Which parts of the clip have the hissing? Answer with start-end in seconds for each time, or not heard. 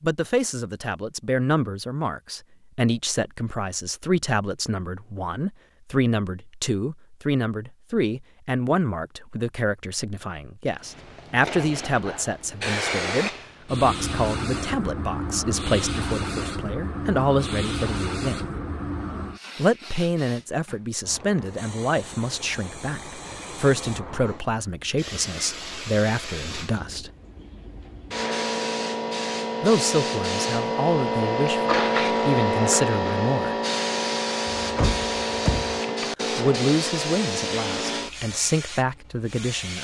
10.8-39.7.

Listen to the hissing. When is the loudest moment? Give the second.
32 s.